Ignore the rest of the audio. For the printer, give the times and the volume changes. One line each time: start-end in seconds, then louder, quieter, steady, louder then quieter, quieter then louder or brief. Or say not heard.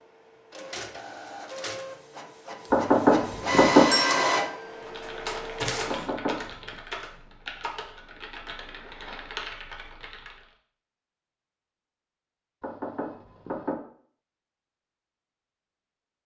0.0-6.1 louder then quieter.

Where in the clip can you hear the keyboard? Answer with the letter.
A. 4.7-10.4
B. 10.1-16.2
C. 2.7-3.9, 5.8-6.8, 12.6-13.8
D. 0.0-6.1
A.